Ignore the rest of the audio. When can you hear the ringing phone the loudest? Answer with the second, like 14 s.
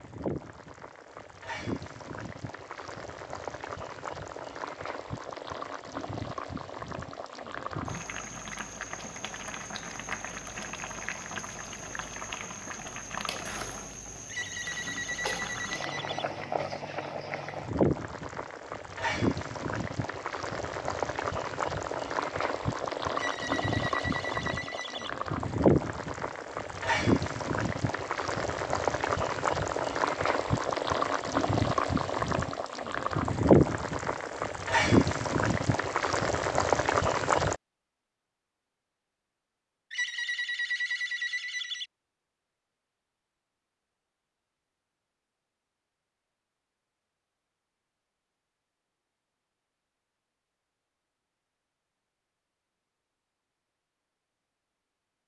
41 s.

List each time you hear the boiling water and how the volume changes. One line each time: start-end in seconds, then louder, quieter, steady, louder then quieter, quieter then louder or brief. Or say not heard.
0.0-37.5 louder.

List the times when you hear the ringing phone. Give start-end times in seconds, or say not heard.
14.2-16.2, 23.1-25.1, 39.9-41.9.